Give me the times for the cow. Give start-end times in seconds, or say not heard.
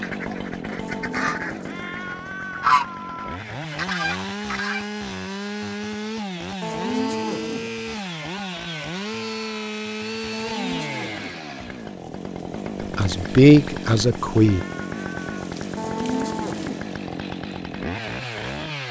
0.8-1.9, 6.6-7.7, 10.3-11.4, 15.8-16.9.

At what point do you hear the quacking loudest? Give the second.
3 s.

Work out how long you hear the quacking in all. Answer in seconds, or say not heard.
5 s.